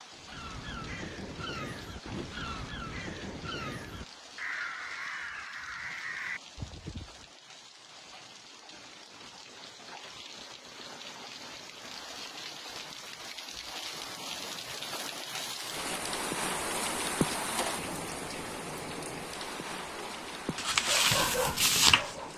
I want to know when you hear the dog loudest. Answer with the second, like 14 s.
22 s.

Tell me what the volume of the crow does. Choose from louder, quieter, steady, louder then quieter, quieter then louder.
steady.